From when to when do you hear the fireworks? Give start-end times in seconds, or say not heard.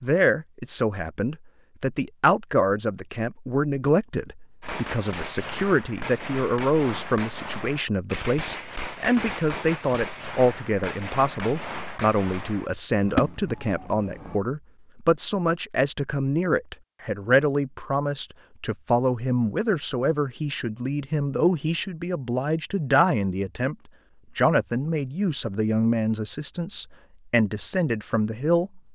4.6-14.4.